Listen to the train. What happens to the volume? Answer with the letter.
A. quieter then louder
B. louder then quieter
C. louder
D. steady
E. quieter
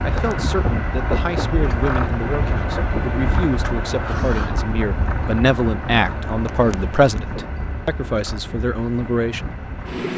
E.